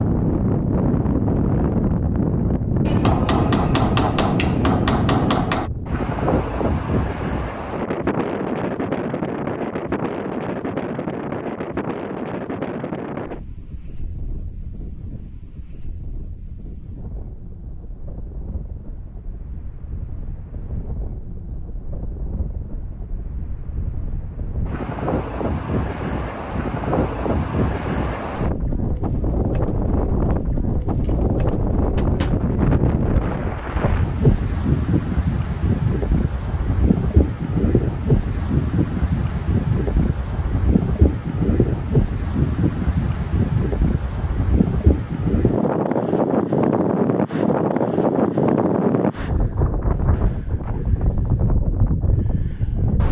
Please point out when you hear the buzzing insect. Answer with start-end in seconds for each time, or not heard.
not heard.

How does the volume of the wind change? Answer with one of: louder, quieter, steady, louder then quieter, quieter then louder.
quieter then louder.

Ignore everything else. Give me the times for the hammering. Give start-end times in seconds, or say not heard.
2.9-5.7, 31.0-32.5.